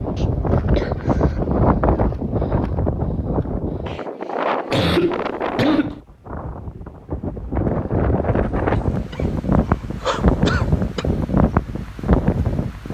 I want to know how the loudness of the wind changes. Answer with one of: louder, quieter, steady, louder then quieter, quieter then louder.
quieter then louder.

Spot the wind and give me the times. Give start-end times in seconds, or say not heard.
0.0-12.8.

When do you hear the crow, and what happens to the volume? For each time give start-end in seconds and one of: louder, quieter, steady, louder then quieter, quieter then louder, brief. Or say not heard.
not heard.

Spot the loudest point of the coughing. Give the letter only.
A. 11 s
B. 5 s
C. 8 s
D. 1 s
B.